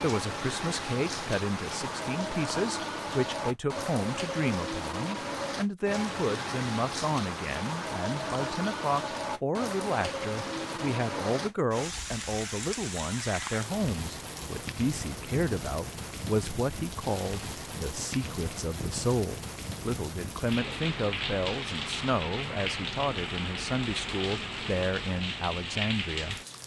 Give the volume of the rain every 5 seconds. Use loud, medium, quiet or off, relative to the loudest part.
loud, loud, loud, medium, loud, loud.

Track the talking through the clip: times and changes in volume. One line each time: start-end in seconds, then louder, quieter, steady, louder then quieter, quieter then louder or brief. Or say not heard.
0.0-26.4 steady.